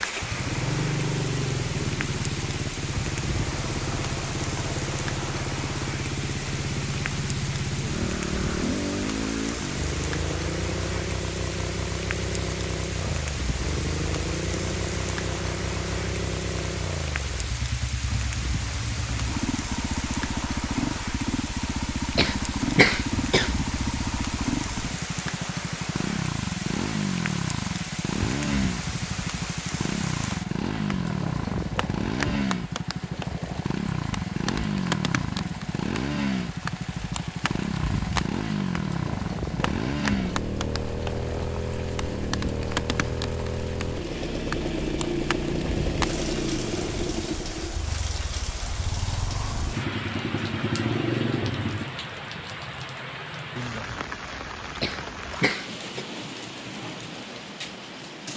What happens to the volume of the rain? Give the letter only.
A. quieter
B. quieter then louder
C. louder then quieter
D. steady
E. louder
D.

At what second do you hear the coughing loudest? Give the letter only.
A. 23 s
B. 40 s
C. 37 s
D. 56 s
A.